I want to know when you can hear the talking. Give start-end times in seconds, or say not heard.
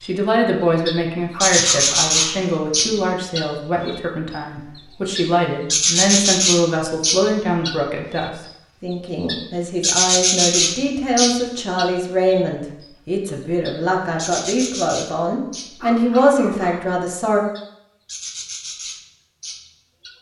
0.0-17.4.